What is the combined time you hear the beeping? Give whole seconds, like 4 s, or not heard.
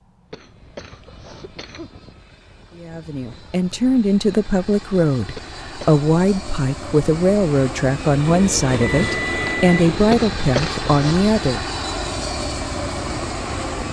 2 s.